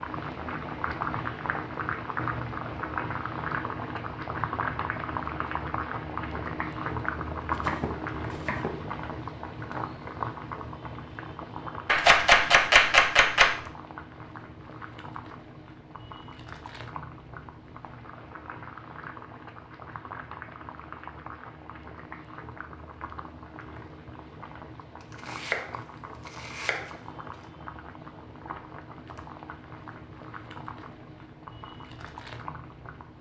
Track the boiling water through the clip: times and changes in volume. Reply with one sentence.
The boiling water can be heard from 0.0 to 33.1 s, getting quieter.